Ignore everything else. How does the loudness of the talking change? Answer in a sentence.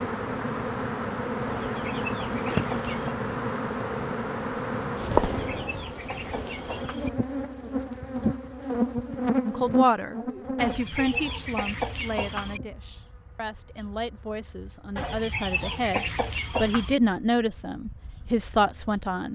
The loudness of the talking goes down, then up.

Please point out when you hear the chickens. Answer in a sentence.
You can hear the chickens from 1.4 to 3.1 s, from 5.3 to 7.1 s, from 10.6 to 12.6 s and from 14.9 to 16.9 s.